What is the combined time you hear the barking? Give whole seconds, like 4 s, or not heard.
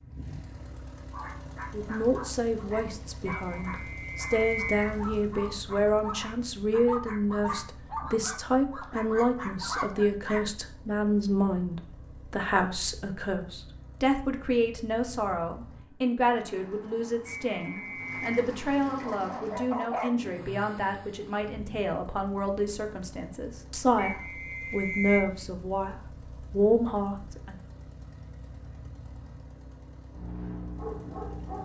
12 s.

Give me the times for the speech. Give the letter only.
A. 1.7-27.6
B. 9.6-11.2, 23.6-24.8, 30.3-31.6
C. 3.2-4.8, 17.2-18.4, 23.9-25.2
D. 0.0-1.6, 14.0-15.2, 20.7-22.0
A.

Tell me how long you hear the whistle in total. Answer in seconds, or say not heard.
4 s.